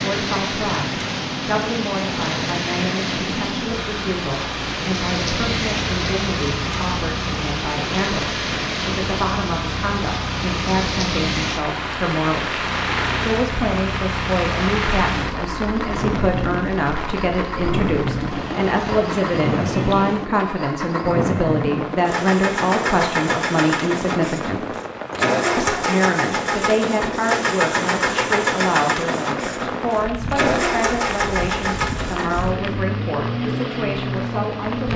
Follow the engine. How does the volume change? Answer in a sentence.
The loudness of the engine goes up.